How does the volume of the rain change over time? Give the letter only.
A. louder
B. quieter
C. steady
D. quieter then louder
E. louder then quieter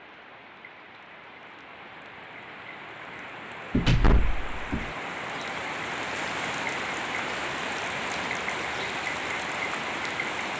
A.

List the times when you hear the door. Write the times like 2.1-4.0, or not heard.
3.7-4.9.